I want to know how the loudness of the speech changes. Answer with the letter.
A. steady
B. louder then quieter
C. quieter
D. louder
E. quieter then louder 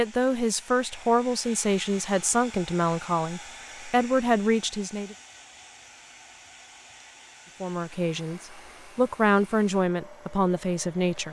A.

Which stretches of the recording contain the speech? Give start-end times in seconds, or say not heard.
0.0-5.2, 7.6-11.2.